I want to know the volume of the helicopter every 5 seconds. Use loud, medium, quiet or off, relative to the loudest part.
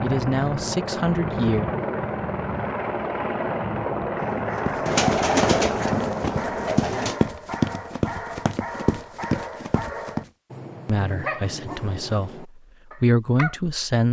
loud, loud, off.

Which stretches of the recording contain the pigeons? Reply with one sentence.
You can hear the pigeons from 4.8 to 7.2 s.